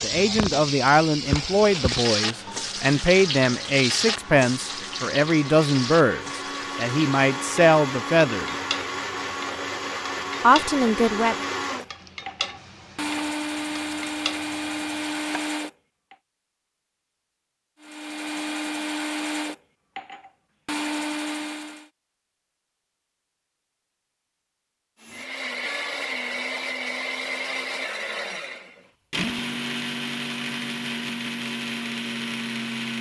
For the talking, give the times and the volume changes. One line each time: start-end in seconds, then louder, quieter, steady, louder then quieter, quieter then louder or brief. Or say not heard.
0.0-8.5 steady
10.4-11.4 brief.